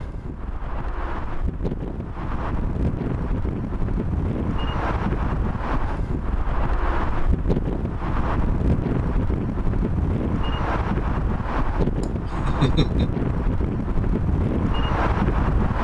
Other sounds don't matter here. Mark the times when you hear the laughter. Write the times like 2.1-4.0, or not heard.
12.0-13.1.